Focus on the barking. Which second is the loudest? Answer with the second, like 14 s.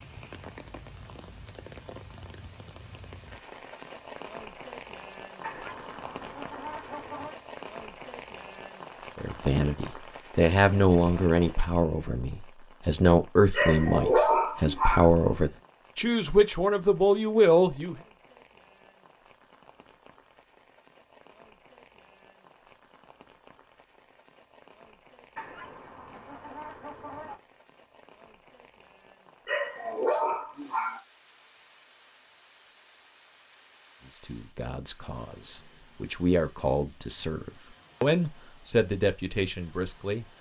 14 s.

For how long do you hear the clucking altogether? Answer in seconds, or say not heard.
4 s.